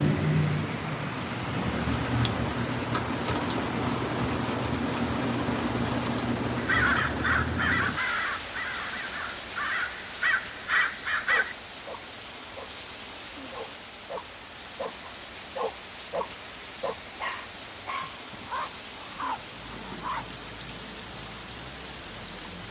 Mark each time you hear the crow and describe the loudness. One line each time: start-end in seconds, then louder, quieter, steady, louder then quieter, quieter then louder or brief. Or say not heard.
6.5-11.6 quieter then louder.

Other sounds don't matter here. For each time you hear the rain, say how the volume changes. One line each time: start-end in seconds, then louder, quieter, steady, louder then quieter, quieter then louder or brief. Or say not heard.
0.0-22.6 quieter.